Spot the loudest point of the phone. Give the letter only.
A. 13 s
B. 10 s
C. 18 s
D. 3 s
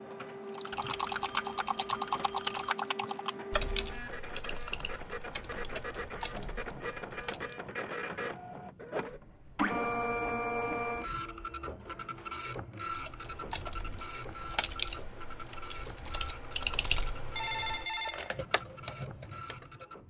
C.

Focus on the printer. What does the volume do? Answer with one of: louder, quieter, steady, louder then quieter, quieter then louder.
louder then quieter.